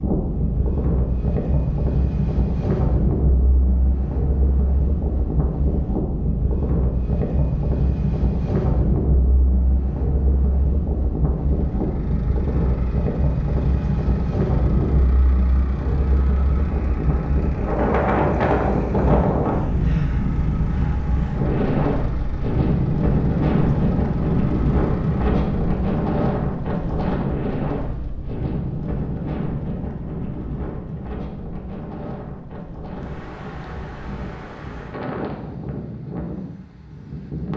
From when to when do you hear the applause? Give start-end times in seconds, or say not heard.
not heard.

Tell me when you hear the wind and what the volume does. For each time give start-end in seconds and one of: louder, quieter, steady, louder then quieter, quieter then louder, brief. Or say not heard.
0.0-37.5 quieter.